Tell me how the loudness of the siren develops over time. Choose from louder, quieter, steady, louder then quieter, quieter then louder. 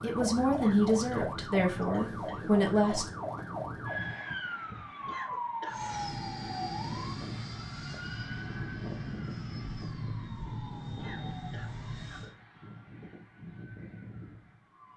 quieter.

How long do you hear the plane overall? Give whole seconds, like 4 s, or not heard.
7 s.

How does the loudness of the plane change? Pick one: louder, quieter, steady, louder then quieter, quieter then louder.
steady.